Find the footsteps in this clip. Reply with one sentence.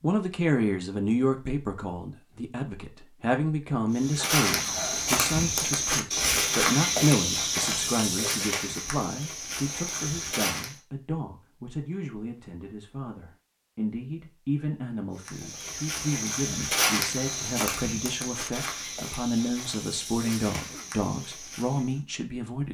You can hear the footsteps from 3.9 to 10.8 s and from 15.2 to 22.0 s.